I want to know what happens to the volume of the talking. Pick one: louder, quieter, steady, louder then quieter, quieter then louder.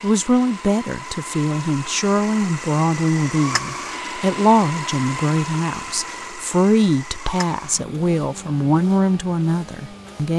steady.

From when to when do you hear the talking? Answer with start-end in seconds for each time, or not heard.
0.0-10.3.